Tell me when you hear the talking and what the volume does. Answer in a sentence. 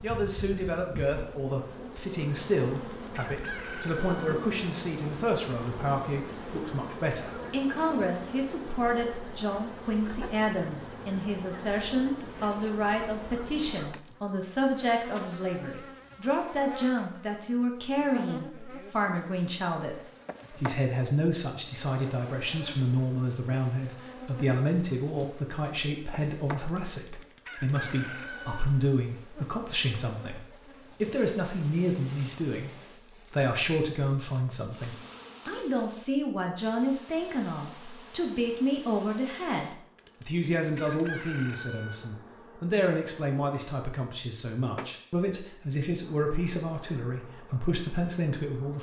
The talking can be heard from 0.0 to 32.7 s, at a steady volume; and from 33.3 to 48.7 s, at a steady volume.